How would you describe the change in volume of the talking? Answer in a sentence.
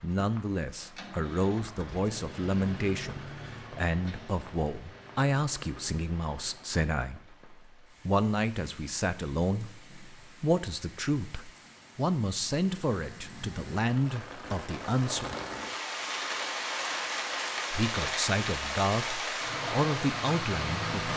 The volume of the talking stays about the same.